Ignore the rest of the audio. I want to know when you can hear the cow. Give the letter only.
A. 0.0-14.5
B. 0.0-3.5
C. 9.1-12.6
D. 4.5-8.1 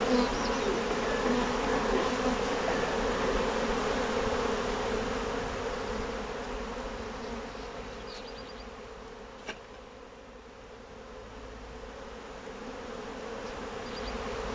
B.